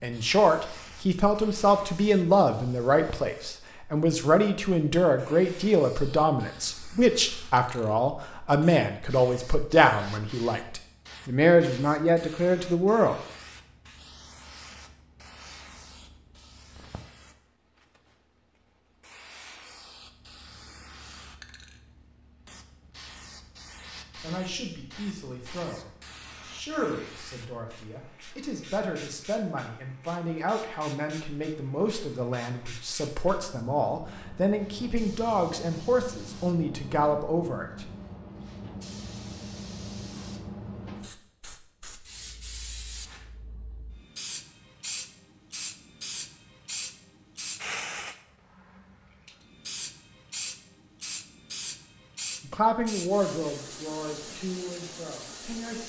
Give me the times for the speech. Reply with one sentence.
You can hear the speech from 0.0 to 13.2 s, from 24.1 to 37.9 s and from 52.5 to 55.8 s.